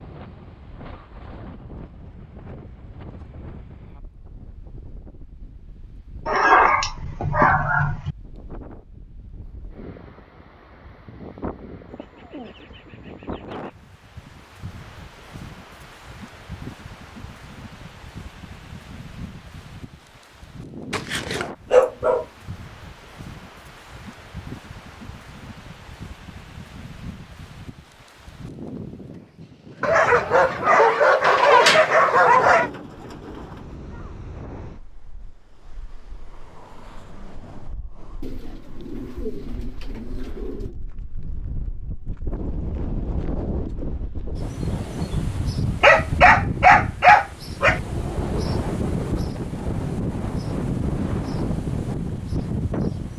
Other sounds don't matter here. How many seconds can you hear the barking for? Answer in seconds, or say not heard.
8 s.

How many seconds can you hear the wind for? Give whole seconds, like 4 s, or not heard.
53 s.